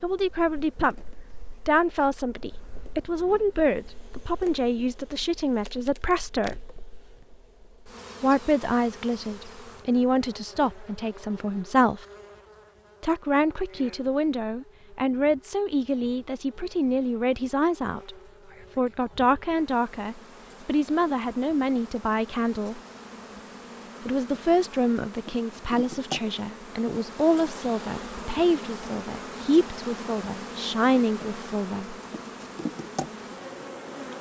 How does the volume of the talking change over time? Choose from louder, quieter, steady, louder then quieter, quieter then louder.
steady.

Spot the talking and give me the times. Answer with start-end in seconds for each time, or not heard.
0.0-6.7, 8.2-12.1, 13.0-18.1, 18.8-22.8, 24.1-31.9.